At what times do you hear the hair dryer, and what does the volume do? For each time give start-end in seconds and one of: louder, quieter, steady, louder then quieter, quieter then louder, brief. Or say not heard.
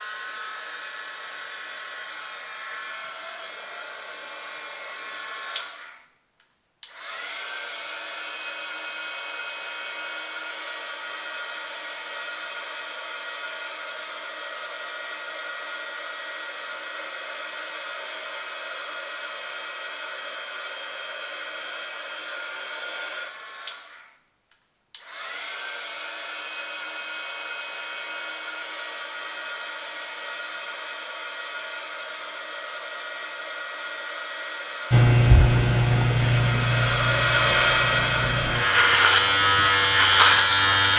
0.0-40.9 louder.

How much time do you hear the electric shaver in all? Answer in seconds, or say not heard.
6 s.